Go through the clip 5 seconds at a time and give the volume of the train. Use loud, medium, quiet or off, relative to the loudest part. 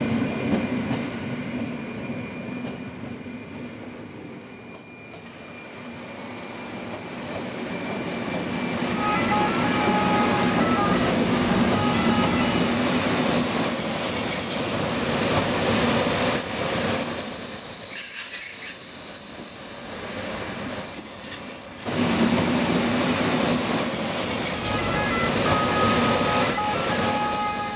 medium, medium, loud, loud, loud, loud.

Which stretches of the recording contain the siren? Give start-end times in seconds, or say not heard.
8.8-12.7, 24.4-27.7.